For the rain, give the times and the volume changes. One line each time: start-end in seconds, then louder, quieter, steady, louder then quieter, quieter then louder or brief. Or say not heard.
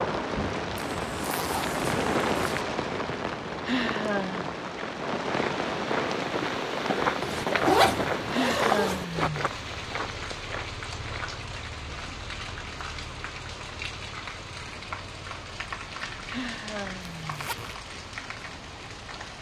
0.0-19.3 quieter.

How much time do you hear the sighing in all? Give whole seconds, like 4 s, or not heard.
3 s.